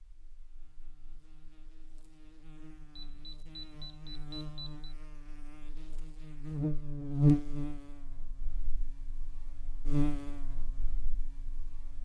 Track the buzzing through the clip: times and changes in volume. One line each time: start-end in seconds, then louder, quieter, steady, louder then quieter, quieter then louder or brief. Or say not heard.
0.0-12.0 louder then quieter.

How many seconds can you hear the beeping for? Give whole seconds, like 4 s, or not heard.
2 s.